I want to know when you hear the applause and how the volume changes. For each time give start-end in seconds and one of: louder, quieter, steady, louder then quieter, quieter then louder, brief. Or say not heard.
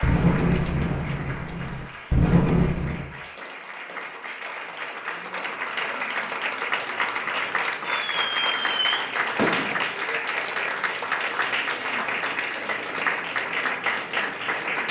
0.0-14.8 louder.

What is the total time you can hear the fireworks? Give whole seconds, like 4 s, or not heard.
5 s.